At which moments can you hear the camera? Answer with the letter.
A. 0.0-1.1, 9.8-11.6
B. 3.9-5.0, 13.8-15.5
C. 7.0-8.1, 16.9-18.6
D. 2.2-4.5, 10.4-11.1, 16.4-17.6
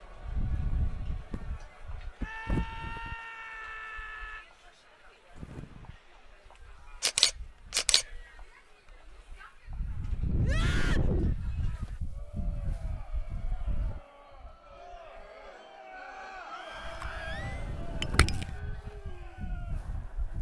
C.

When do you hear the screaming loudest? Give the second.
11 s.